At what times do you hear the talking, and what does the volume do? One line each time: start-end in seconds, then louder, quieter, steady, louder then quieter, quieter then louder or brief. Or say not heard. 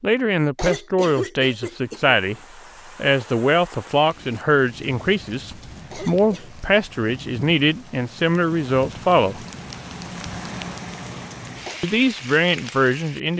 0.0-2.4 brief
3.0-9.4 steady
11.8-13.3 brief.